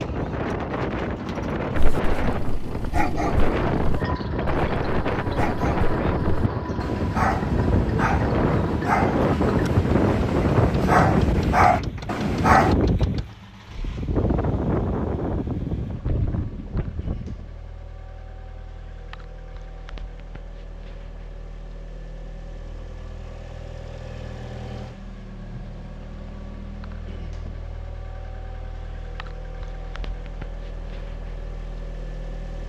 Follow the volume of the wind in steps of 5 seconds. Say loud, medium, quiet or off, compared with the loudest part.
loud, loud, loud, medium, off, off, off.